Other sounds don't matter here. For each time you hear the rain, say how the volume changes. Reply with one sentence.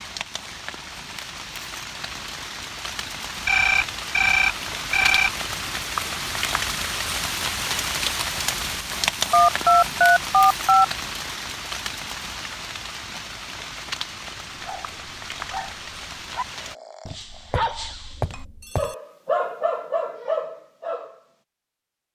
You can hear the rain from 0.0 to 16.8 s, getting louder then quieter.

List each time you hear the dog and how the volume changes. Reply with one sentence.
The dog can be heard from 14.6 to 21.2 s, getting louder.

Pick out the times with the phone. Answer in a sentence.
You can hear the phone from 3.5 to 5.3 s, from 9.3 to 10.8 s and from 17.1 to 18.9 s.